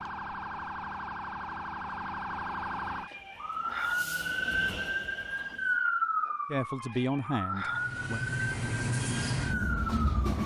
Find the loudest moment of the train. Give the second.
9 s.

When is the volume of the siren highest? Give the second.
6 s.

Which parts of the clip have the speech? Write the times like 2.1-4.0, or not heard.
6.5-8.2.